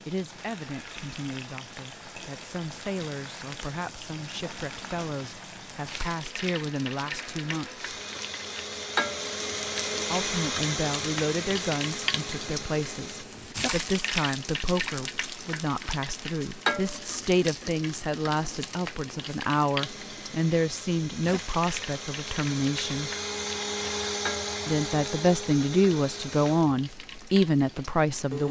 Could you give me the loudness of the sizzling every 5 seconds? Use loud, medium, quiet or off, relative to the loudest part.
medium, loud, loud, loud, medium, medium.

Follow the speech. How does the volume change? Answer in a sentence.
The volume of the speech goes up.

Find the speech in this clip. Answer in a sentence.
The speech can be heard from 0.1 to 7.8 s, from 10.1 to 23.1 s and from 24.6 to 28.4 s.